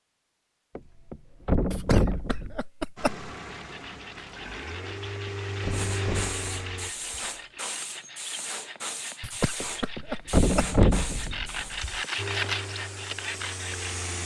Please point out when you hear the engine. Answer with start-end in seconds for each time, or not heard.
3.0-6.9, 12.2-14.2.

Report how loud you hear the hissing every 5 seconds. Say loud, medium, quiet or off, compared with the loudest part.
off, loud, loud.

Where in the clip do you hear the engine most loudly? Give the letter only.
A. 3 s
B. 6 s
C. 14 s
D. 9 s
B.